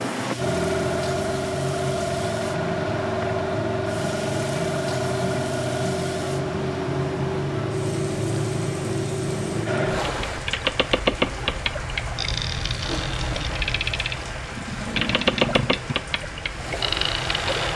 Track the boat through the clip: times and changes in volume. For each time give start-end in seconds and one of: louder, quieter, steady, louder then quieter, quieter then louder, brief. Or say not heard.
0.0-17.7 steady.